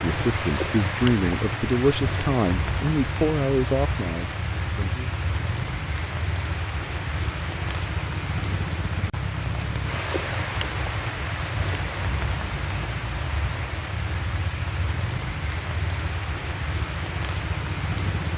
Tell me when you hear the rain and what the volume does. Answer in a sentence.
The rain can be heard from 0.0 to 18.3 s, at a steady volume.